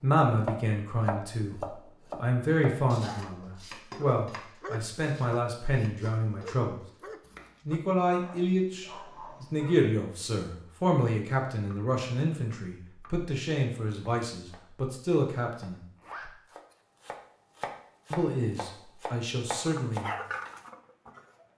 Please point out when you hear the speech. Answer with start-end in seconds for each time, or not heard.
0.0-6.8, 7.7-15.8, 18.1-20.1.